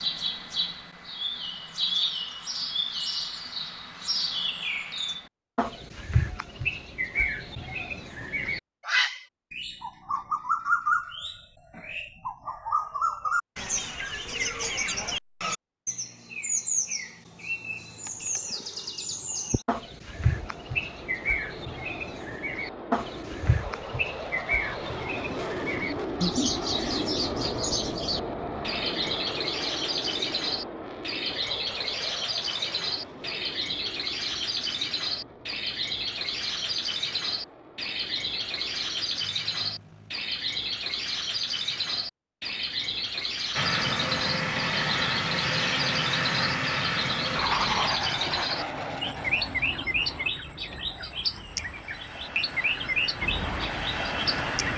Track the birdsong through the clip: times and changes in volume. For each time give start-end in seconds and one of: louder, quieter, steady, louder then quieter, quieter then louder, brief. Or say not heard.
0.0-54.7 steady.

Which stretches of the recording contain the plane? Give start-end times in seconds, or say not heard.
20.1-40.1, 43.5-54.7.